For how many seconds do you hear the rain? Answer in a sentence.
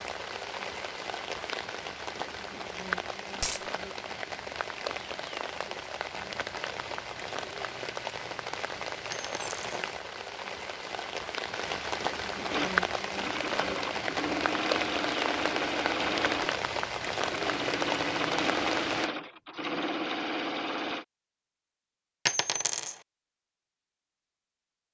The rain can be heard for 19 seconds in total.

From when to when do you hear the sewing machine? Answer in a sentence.
The sewing machine can be heard from 12.4 to 21.1 s.